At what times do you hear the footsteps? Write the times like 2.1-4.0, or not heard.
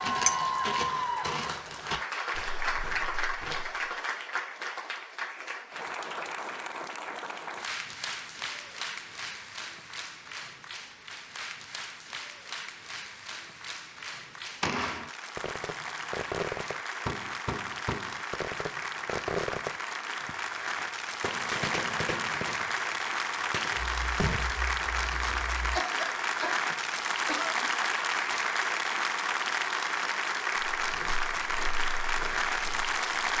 0.0-3.9, 30.8-33.3.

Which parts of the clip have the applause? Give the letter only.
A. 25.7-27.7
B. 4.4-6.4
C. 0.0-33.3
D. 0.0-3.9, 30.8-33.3
C.